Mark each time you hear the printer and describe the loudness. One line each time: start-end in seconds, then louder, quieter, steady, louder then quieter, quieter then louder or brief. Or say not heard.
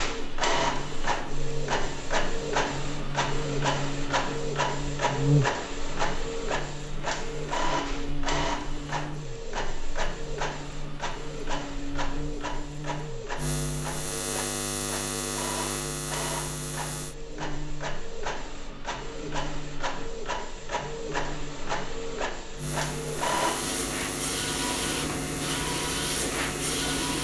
0.0-27.1 quieter then louder.